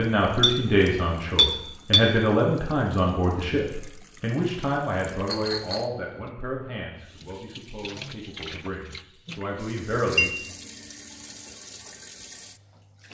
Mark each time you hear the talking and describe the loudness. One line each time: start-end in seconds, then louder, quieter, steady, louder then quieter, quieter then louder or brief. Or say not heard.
0.0-10.3 quieter.